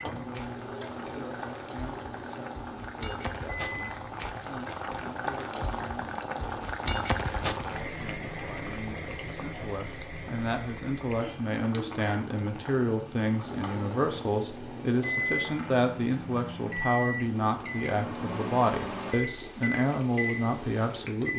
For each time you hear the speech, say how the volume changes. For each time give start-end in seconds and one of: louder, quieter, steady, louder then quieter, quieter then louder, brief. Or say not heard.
0.0-21.3 louder.